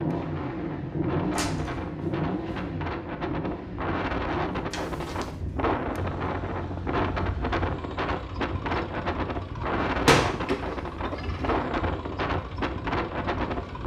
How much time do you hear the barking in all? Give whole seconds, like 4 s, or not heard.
not heard.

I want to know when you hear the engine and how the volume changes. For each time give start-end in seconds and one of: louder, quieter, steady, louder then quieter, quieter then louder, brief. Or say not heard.
0.0-13.8 quieter.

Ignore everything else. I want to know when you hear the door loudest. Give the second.
10 s.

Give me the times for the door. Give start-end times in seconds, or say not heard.
1.4-1.8, 4.7-5.3, 9.8-11.6.